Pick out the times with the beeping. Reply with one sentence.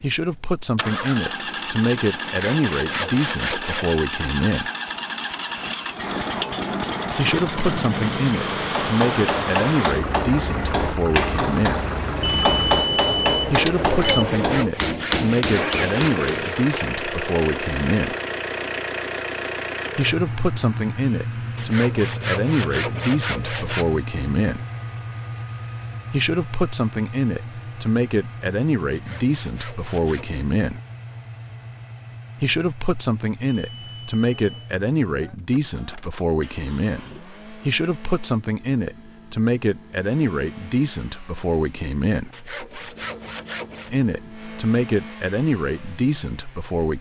You can hear the beeping from 12.2 to 14.2 s and from 33.5 to 34.7 s.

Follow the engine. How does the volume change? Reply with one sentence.
The loudness of the engine goes down.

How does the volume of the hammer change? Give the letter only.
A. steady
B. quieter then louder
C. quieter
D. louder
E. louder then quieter
A.